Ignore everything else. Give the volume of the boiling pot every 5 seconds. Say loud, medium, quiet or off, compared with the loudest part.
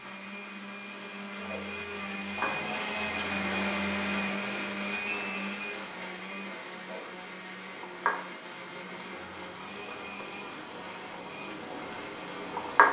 medium, medium, loud.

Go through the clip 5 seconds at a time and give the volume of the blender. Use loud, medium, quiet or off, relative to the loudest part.
loud, medium, medium.